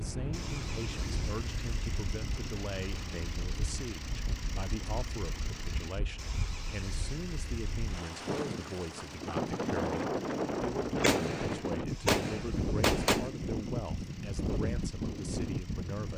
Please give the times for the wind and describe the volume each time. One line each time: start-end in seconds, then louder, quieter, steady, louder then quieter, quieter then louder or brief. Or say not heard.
0.0-16.1 louder.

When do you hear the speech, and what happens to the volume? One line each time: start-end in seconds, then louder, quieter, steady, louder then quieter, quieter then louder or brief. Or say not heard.
0.0-16.1 steady.